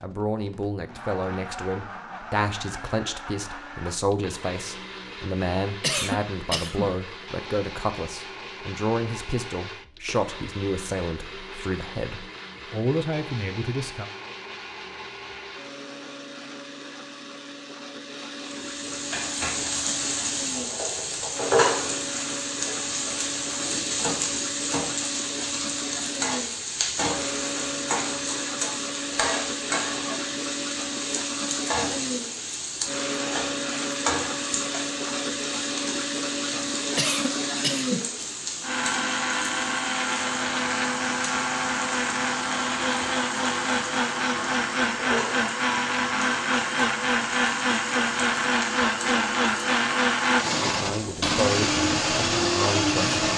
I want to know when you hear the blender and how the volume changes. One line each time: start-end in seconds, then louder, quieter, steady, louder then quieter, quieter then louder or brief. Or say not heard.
0.0-53.3 louder.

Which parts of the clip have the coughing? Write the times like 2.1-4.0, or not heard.
5.8-7.0, 37.0-38.1.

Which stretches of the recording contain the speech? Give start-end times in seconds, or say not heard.
0.0-14.1, 50.6-53.0.